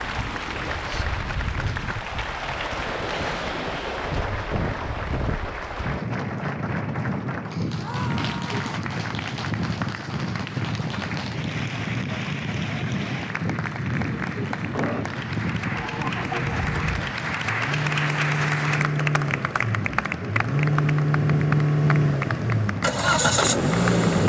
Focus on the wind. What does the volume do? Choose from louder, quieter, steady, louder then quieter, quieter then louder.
steady.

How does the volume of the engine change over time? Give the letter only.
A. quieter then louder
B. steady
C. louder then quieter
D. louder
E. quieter
D.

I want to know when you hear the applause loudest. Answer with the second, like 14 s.
18 s.